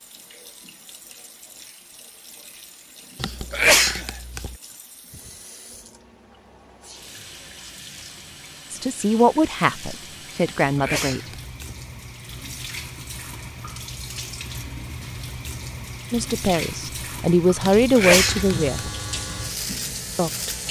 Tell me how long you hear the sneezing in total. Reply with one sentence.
You can hear the sneezing for 4 seconds altogether.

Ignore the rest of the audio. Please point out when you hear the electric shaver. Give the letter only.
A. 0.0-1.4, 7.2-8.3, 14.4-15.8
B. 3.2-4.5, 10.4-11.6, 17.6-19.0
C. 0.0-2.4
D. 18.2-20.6
D.